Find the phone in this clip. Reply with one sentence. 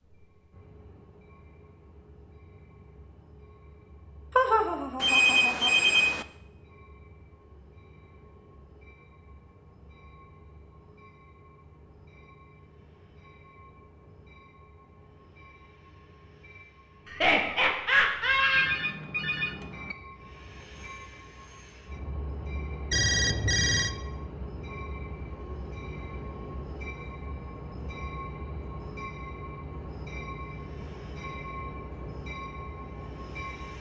You can hear the phone from 5.0 to 6.2 s, from 18.6 to 19.9 s and from 22.9 to 23.9 s.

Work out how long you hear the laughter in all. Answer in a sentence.
You can hear the laughter for 3 seconds altogether.